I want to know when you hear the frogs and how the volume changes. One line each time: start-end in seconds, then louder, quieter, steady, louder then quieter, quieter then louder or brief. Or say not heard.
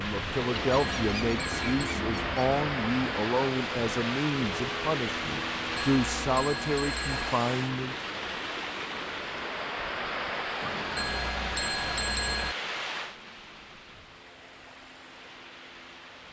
not heard.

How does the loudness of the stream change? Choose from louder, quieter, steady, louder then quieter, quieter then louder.
quieter.